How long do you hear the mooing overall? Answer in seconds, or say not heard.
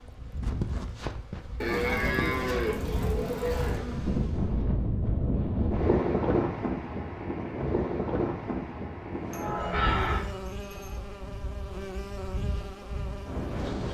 4 s.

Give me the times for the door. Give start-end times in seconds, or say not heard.
not heard.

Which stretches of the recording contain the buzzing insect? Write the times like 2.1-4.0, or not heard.
0.0-4.6, 9.1-13.8.